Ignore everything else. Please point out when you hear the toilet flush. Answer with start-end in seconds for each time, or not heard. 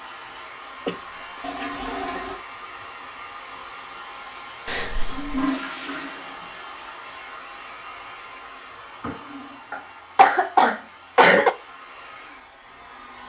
1.4-2.4, 5.0-6.5, 9.0-9.8.